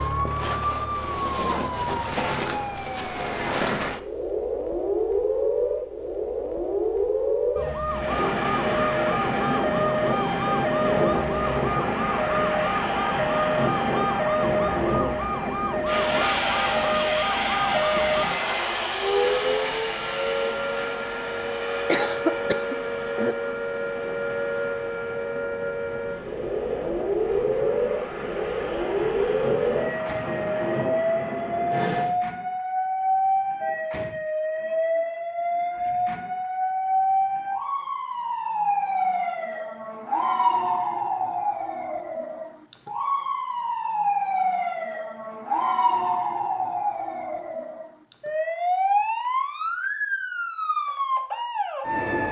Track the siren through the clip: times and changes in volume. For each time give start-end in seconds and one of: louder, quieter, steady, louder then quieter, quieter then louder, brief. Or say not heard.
0.0-52.2 steady.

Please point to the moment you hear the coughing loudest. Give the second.
22 s.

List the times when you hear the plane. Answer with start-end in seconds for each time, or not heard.
7.8-32.1.